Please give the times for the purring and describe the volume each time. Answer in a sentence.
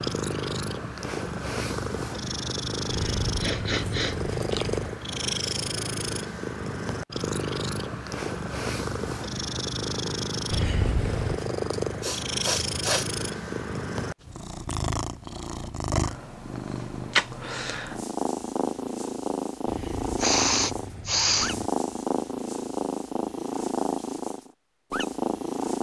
The purring can be heard from 0.0 to 25.7 s, at a steady volume.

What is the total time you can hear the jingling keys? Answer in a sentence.
You can hear the jingling keys for 5 seconds altogether.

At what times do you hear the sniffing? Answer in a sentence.
You can hear the sniffing from 3.4 to 4.2 s, from 11.7 to 13.1 s and from 20.1 to 21.6 s.